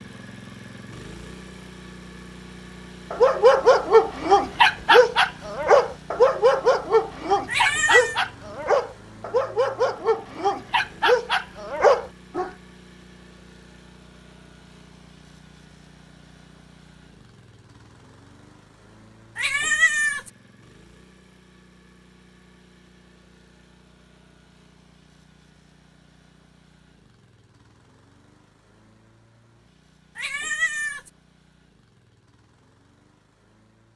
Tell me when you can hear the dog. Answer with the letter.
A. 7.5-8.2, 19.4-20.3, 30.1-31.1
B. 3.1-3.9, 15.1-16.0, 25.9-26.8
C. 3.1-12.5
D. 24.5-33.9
C.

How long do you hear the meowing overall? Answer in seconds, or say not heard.
3 s.